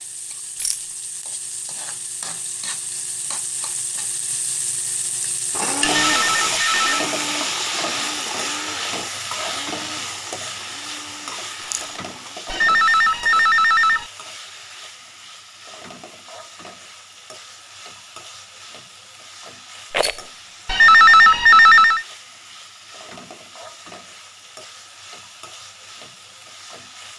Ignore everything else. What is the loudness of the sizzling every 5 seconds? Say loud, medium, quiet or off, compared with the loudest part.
medium, loud, medium, quiet, quiet, quiet.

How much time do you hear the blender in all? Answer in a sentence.
You can hear the blender for 7 seconds altogether.